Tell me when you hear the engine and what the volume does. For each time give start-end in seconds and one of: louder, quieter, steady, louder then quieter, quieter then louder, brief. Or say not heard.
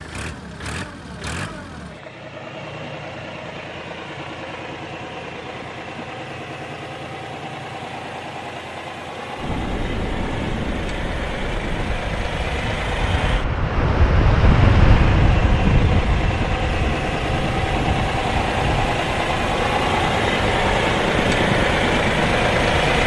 0.0-23.0 louder.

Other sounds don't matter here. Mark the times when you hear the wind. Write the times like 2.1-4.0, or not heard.
9.3-23.0.